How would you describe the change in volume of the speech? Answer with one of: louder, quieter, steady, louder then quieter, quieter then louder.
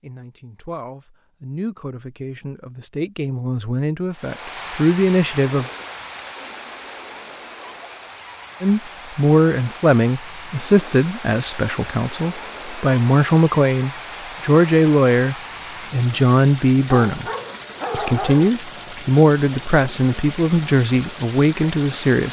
louder.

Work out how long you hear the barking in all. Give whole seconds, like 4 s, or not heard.
2 s.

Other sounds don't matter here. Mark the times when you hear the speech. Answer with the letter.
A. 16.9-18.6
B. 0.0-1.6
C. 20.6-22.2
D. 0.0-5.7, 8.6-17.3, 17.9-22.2
D.